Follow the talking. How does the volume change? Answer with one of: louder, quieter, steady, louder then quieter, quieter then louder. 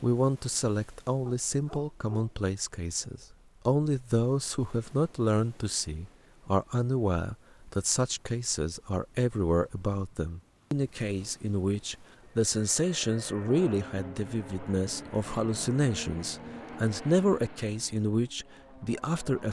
steady.